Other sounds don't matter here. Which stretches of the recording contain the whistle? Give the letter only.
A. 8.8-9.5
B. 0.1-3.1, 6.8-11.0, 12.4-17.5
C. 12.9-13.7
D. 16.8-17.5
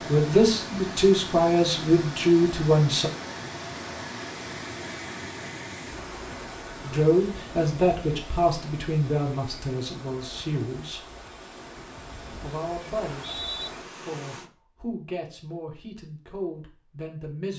C.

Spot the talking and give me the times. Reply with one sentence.
The talking can be heard from 0.1 to 3.1 s, from 6.8 to 11.0 s and from 12.4 to 17.5 s.